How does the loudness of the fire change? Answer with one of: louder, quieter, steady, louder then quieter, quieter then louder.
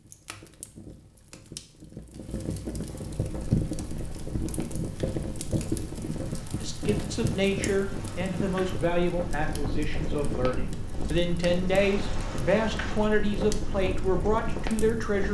louder then quieter.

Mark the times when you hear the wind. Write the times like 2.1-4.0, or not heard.
3.1-15.3.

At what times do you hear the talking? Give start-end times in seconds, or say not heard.
6.6-15.3.